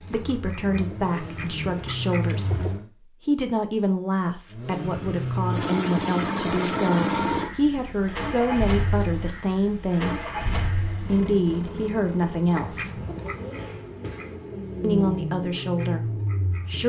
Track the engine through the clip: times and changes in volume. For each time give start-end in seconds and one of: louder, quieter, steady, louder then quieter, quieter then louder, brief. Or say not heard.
0.0-2.9 brief
4.5-16.8 quieter then louder.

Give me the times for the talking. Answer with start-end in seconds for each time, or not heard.
0.1-13.0, 14.8-16.8.